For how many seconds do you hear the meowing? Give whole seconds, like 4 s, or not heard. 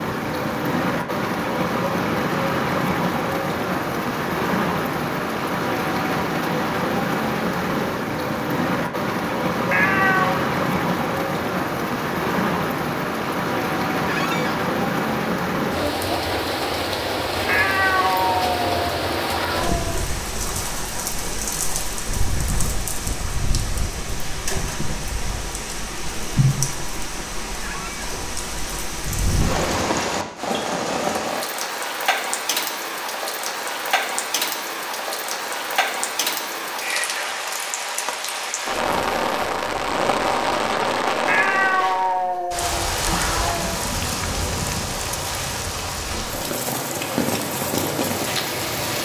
6 s.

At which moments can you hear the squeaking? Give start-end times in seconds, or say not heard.
14.1-14.6, 27.6-28.1.